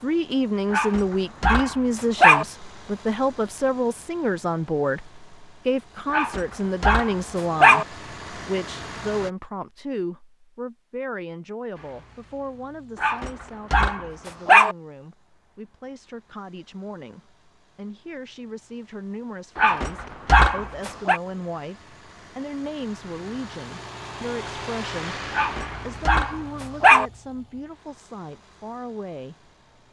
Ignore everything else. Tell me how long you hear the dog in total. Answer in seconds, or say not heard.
9 s.